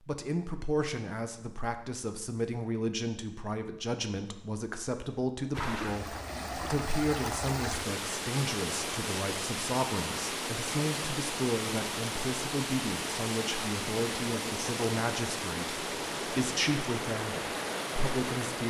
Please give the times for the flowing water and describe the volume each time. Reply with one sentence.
The flowing water can be heard from 5.5 to 18.6 s, at a steady volume.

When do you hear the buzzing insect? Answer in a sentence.
The buzzing insect can't be heard in this clip.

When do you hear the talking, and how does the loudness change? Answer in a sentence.
The talking can be heard from 0.1 to 18.6 s, at a steady volume.